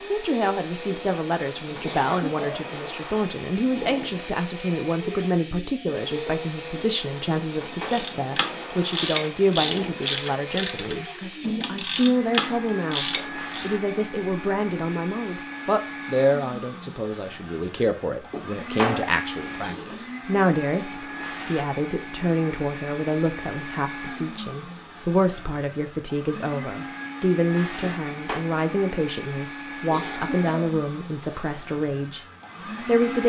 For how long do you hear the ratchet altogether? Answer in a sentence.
You can hear the ratchet for 6 seconds altogether.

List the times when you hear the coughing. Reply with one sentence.
The coughing can be heard from 1.8 to 2.7 s and from 29.9 to 30.8 s.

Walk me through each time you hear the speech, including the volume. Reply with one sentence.
You can hear the speech from 0.1 to 32.2 s, at a steady volume; and briefly from 32.8 to 33.2 s.